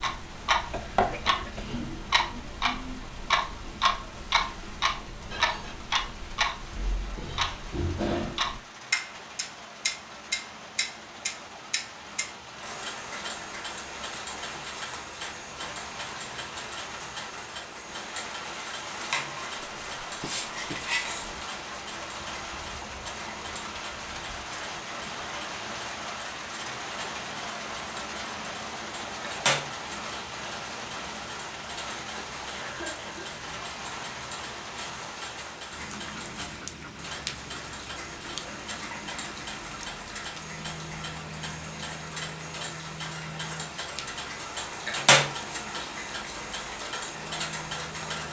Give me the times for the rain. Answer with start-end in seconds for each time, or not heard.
0.1-48.2.